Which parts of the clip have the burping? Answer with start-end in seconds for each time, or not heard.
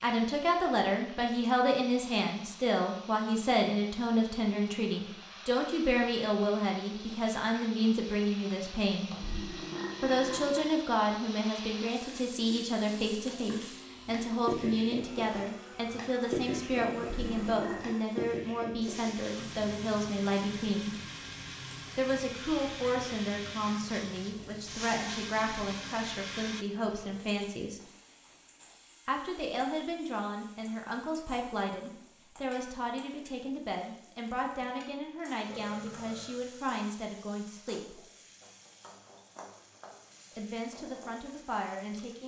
9.1-10.8, 16.9-18.1, 35.5-36.4.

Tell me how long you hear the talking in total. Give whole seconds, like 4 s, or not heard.
37 s.